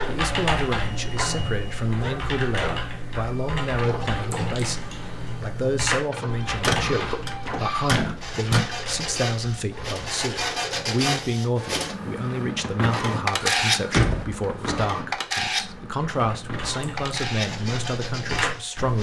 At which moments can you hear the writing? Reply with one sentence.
The writing can't be heard in this clip.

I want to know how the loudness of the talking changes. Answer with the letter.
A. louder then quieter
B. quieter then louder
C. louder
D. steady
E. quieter
D.